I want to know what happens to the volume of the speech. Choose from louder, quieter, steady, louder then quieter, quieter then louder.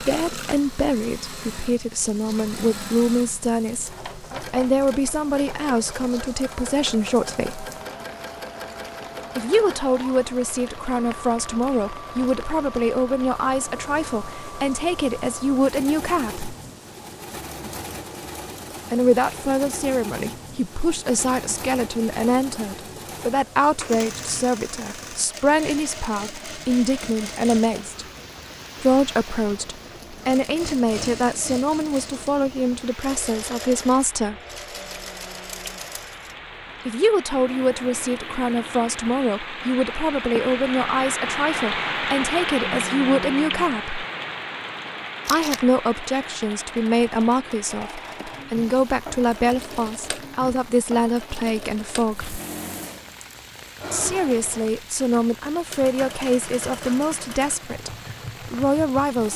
steady.